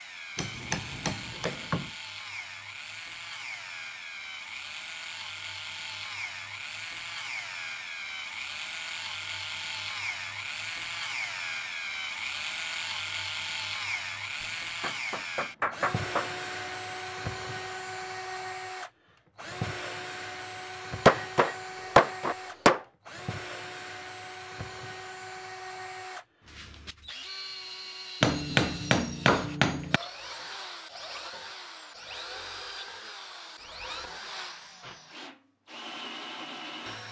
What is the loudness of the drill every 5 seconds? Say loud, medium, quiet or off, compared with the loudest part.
medium, loud, loud, loud, medium, medium, medium, medium.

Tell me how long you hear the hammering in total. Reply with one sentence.
The hammering can be heard for 7 seconds in total.